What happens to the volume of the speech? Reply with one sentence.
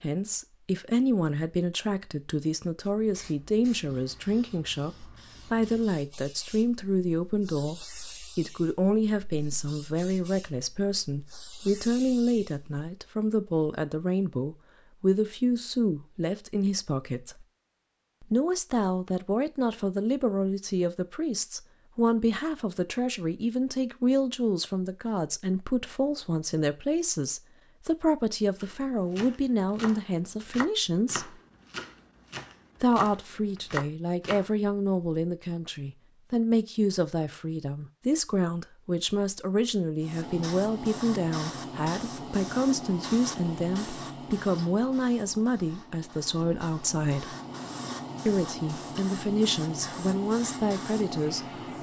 The loudness of the speech stays about the same.